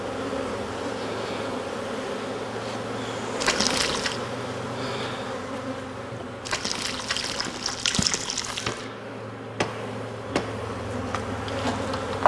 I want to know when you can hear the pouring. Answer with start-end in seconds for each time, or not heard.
3.4-4.2, 6.5-8.9.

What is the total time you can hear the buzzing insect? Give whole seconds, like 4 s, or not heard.
12 s.